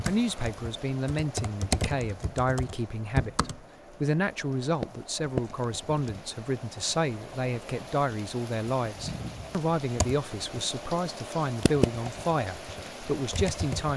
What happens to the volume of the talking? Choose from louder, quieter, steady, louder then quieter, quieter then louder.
steady.